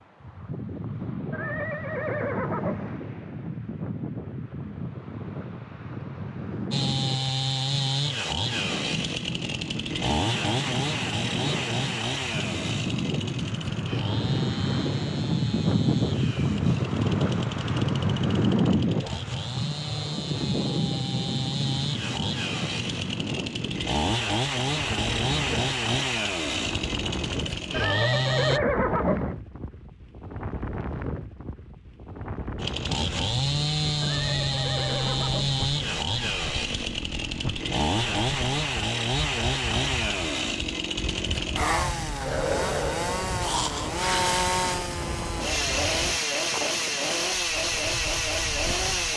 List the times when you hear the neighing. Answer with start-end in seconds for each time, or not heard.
1.3-3.0, 27.7-29.4, 34.0-35.6.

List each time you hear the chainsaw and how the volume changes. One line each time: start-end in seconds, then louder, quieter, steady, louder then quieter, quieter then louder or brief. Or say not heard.
6.7-28.6 quieter then louder
32.6-49.1 steady.